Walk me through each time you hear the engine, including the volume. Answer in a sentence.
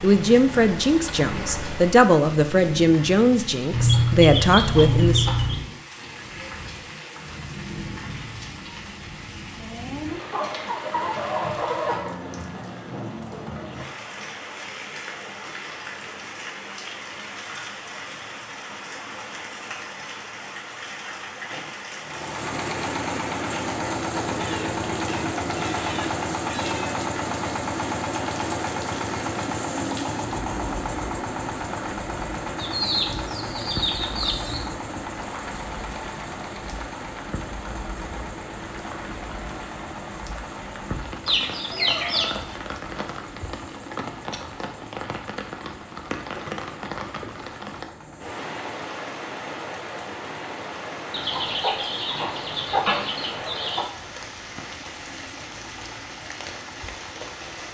You can hear the engine briefly from 0.0 to 2.1 s; and from 22.0 to 57.6 s, getting quieter.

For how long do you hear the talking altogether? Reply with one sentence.
You can hear the talking for 5 seconds altogether.